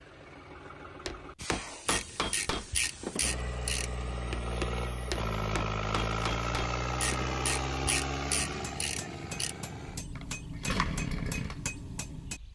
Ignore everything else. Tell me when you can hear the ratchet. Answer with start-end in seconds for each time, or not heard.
1.9-4.0, 7.0-9.6.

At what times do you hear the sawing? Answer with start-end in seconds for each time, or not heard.
not heard.